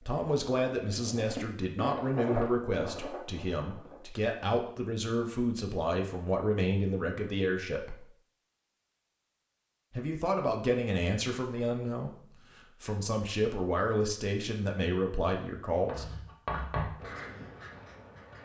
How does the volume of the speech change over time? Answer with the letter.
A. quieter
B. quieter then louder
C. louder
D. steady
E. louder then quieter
D.